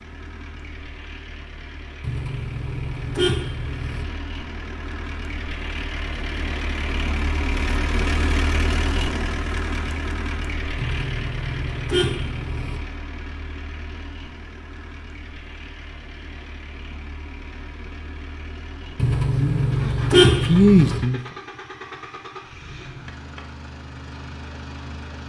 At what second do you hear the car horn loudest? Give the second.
20 s.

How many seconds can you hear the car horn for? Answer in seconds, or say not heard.
6 s.